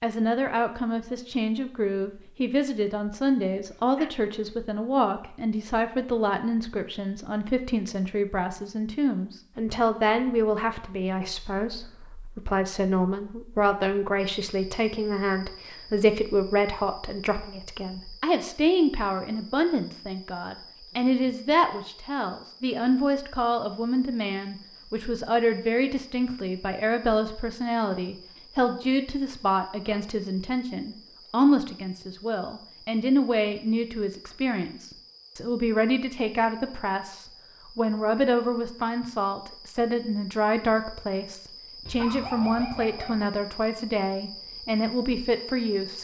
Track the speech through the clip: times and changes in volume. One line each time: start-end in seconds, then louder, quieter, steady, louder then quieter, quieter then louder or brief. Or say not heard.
0.0-45.9 steady.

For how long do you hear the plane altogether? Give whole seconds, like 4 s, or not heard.
not heard.